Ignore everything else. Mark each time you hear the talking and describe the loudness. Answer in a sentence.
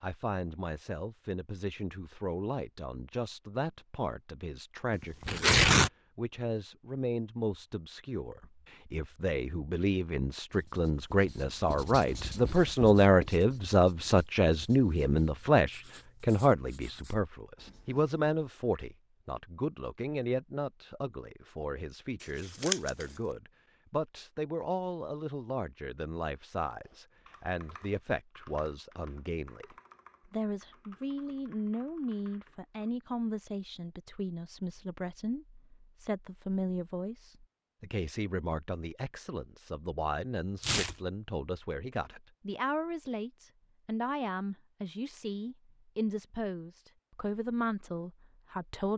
The talking can be heard from 0.0 to 48.9 s, getting louder then quieter.